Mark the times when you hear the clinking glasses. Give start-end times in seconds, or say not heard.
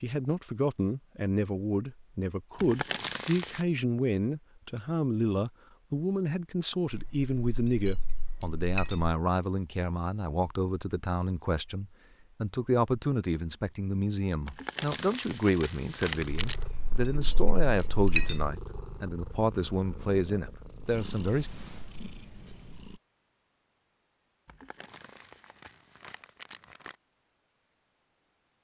6.9-9.2, 16.4-18.5.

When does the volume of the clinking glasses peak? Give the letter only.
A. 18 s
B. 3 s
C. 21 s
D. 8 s
A.